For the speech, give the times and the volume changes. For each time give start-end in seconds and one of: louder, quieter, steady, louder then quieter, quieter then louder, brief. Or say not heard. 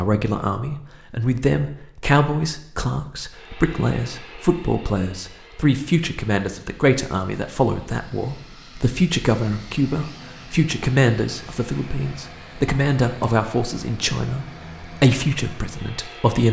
0.0-16.4 steady.